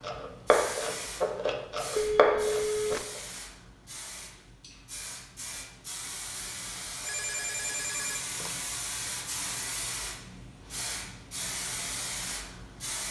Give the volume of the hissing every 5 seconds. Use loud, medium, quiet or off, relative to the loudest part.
medium, loud, loud.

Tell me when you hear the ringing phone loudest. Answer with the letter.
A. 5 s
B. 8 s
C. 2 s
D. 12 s
C.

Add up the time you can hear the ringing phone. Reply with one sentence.
You can hear the ringing phone for 3 seconds altogether.